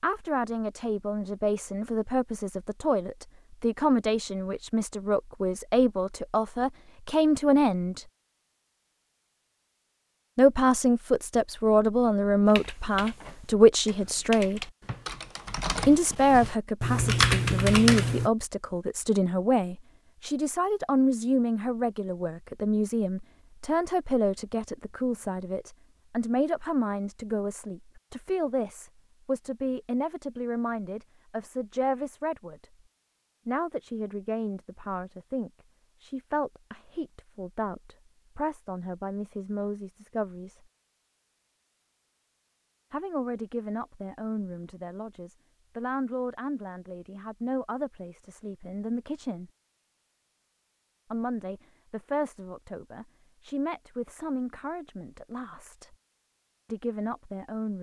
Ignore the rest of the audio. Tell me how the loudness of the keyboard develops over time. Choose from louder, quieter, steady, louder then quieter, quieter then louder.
louder.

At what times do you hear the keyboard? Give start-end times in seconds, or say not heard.
12.4-18.3.